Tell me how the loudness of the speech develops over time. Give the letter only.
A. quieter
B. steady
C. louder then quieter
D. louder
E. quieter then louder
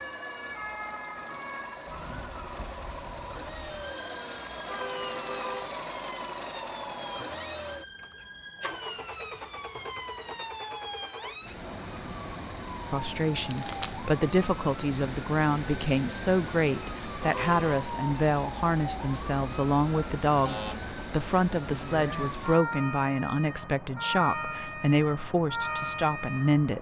B.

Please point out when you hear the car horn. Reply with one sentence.
You can hear the car horn from 4.7 to 5.8 s and from 17.2 to 17.9 s.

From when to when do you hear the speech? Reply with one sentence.
The speech can be heard from 12.9 to 26.7 s.